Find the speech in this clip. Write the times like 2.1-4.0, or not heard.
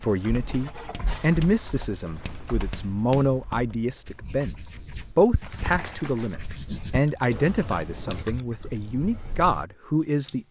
0.0-10.4.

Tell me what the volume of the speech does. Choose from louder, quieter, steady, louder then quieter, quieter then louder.
steady.